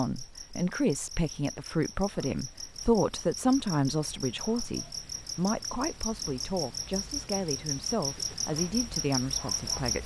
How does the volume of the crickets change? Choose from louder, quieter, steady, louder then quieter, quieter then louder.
louder.